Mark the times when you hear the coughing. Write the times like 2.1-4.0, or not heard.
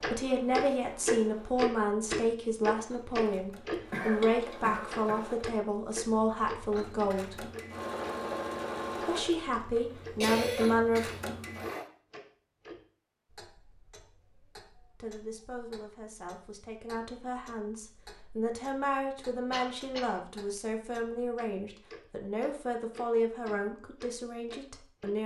3.9-5.2, 10.2-11.8, 19.5-20.2.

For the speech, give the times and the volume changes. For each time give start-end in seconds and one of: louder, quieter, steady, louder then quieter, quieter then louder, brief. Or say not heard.
0.0-7.5 steady
9.1-11.1 brief
15.0-25.2 louder.